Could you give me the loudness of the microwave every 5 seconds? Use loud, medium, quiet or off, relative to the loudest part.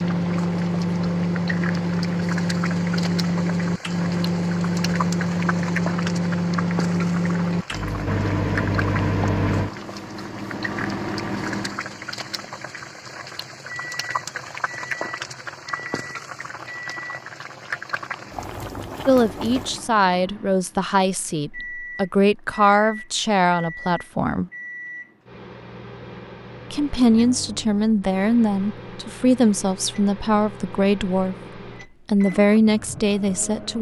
loud, loud, medium, quiet, quiet, quiet, quiet.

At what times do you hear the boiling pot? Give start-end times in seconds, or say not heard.
0.0-19.9.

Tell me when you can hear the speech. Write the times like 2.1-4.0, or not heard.
19.1-24.5, 26.7-31.4, 32.0-33.7.